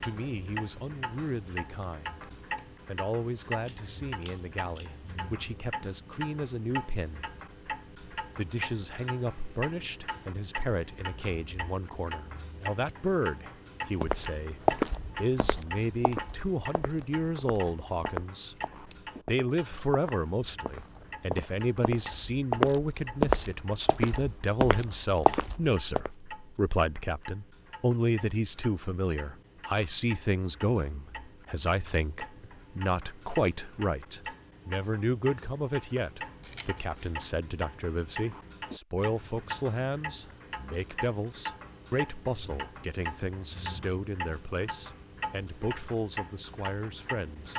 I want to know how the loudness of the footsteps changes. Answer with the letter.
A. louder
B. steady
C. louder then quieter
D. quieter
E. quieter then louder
E.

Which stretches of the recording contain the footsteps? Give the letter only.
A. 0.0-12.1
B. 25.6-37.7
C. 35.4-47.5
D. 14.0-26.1
D.